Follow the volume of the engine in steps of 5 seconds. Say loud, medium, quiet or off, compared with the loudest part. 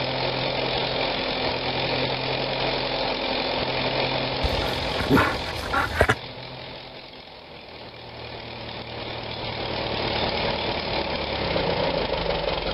loud, medium, loud.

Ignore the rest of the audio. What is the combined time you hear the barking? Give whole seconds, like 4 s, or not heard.
2 s.